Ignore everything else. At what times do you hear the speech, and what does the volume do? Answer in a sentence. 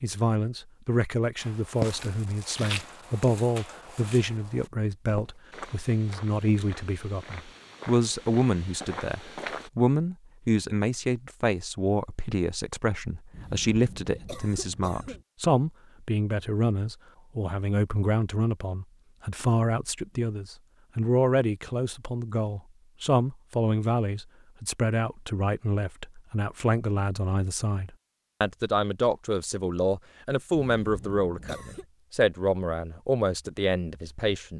You can hear the speech from 0.0 to 34.5 s, at a steady volume.